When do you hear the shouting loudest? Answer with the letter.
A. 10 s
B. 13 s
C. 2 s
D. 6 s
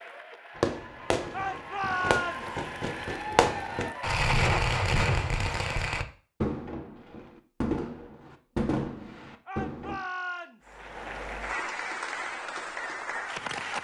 C.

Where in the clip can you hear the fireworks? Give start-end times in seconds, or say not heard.
0.6-9.9.